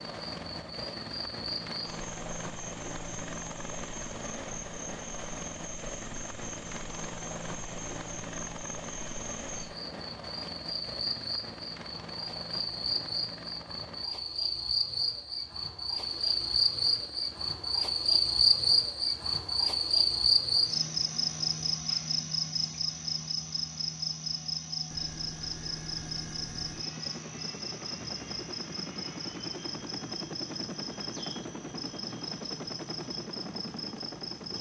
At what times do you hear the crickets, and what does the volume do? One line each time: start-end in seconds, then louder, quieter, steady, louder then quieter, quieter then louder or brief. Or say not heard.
0.0-34.5 louder then quieter.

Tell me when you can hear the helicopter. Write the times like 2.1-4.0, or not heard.
0.0-14.1, 16.0-21.8, 24.9-34.5.